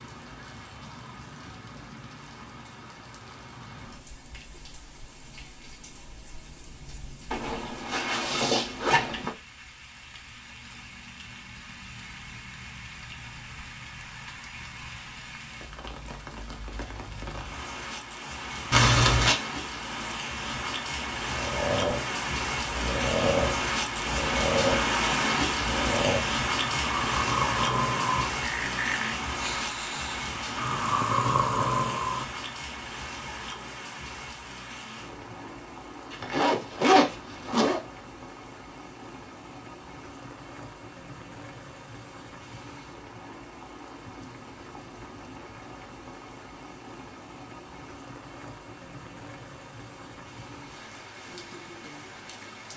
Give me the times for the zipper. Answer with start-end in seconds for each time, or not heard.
7.3-9.3, 18.7-19.4, 36.1-37.8.